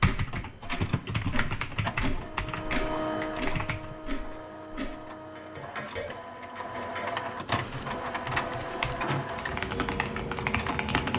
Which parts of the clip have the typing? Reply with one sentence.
You can hear the typing from 0.0 to 4.0 s and from 7.7 to 11.1 s.